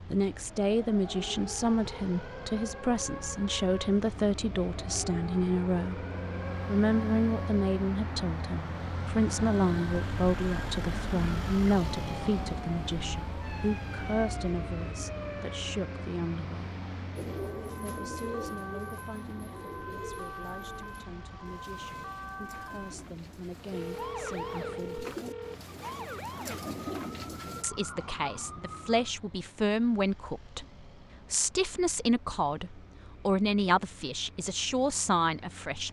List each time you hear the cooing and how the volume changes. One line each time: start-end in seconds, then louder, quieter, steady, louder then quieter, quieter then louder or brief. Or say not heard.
17.1-27.6 quieter then louder.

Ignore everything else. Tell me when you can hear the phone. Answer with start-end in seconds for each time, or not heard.
23.7-25.6.